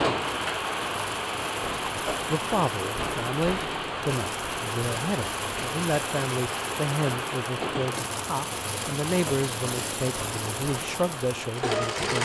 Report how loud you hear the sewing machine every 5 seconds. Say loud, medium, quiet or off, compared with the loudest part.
medium, medium, loud.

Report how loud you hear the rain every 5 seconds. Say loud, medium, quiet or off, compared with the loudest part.
loud, loud, medium.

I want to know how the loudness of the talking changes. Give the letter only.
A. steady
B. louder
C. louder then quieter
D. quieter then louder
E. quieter
A.